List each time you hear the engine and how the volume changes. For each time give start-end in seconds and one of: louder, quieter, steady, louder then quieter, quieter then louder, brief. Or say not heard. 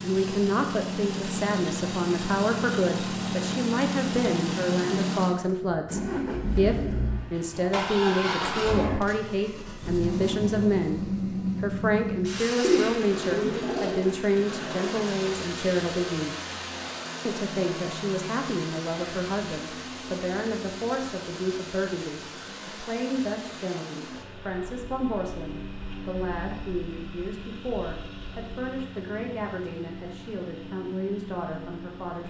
0.0-32.2 quieter.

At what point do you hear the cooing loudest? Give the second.
13 s.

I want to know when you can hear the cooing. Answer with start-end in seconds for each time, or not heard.
12.6-14.1.